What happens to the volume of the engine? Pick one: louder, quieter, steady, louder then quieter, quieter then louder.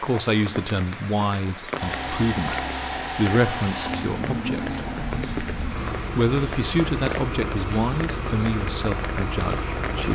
steady.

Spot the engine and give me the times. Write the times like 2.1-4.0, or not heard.
1.8-10.1.